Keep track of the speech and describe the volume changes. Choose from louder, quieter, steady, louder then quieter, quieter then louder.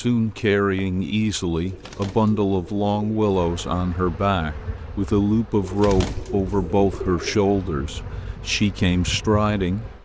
steady.